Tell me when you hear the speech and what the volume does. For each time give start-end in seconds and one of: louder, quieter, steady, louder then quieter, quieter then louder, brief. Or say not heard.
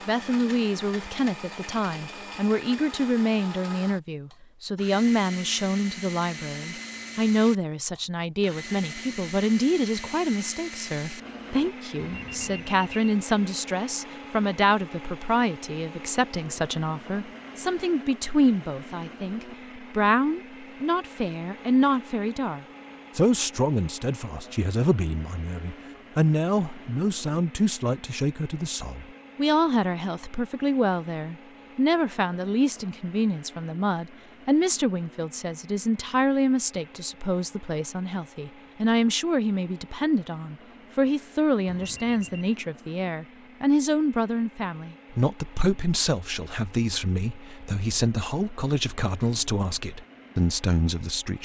0.1-51.4 steady.